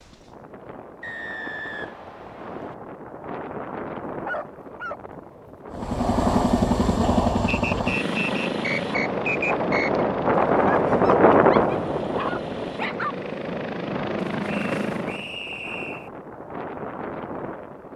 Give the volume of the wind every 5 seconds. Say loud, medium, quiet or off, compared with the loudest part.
quiet, medium, loud, quiet.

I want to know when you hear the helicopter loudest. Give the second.
7 s.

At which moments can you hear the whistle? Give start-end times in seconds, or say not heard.
1.0-2.8, 7.5-10.1, 14.4-16.1.